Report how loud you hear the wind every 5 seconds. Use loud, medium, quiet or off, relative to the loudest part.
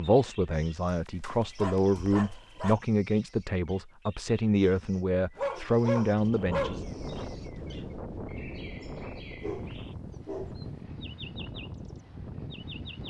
off, loud, loud.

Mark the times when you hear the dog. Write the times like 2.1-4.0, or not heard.
0.9-2.8, 5.3-6.8, 9.4-10.7.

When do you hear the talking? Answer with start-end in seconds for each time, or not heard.
0.0-6.8.